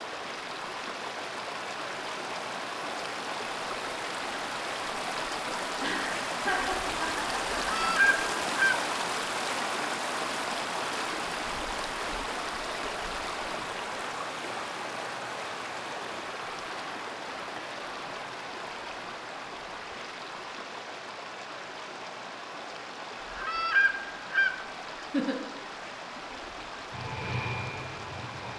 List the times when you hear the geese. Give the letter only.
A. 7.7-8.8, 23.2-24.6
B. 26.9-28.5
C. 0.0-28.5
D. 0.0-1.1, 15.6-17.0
A.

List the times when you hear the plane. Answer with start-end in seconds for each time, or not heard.
26.9-28.5.